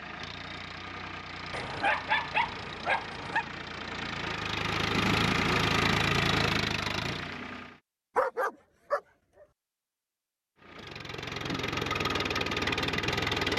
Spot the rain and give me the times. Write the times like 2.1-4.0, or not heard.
not heard.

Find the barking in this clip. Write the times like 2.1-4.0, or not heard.
1.5-3.5, 8.2-9.0.